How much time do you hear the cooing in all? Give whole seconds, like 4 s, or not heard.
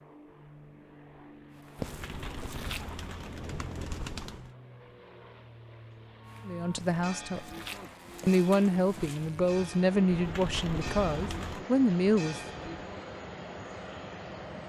4 s.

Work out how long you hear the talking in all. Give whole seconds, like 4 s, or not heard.
5 s.